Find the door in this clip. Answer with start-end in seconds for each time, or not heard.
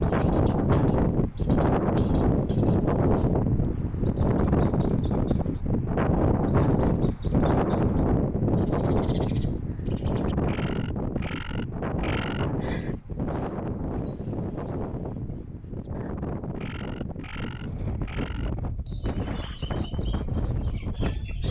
not heard.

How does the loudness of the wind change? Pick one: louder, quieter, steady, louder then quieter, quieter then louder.
quieter.